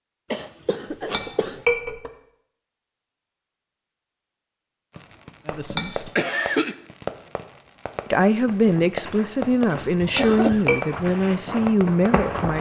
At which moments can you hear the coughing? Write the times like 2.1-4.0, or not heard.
0.3-1.6, 5.5-6.8, 9.4-10.7.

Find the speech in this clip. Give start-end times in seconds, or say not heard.
5.5-6.1, 8.1-12.5.